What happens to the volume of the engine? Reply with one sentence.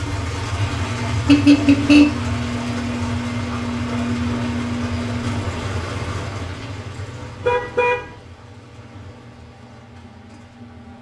The loudness of the engine goes down.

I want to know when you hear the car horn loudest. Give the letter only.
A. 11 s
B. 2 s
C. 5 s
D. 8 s
B.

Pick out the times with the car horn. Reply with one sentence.
The car horn can be heard from 1.2 to 2.0 s and from 7.4 to 8.2 s.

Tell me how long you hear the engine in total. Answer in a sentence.
The engine can be heard for 11 seconds in total.